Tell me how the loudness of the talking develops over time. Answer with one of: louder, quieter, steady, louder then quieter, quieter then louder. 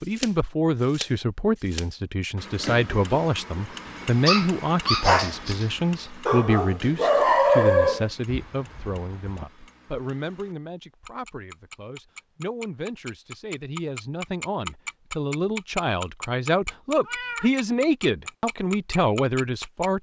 quieter then louder.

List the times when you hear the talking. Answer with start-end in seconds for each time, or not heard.
0.0-19.9.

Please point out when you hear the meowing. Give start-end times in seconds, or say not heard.
17.0-17.6.